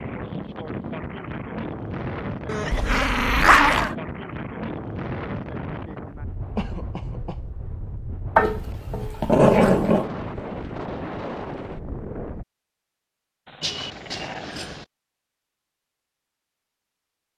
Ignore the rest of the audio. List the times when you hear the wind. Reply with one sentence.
The wind can be heard from 0.0 to 12.4 s.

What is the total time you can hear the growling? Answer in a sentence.
You can hear the growling for 4 seconds altogether.